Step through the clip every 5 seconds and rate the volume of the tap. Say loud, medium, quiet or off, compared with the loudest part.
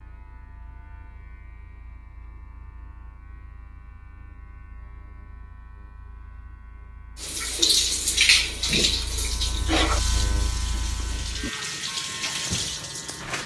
off, loud, medium.